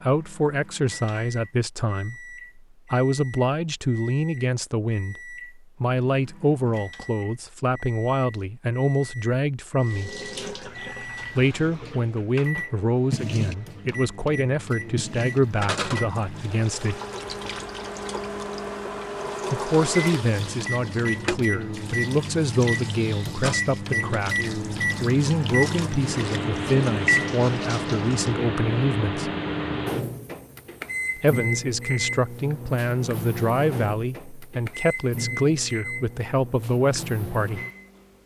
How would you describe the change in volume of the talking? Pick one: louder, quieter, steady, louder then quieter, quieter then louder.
steady.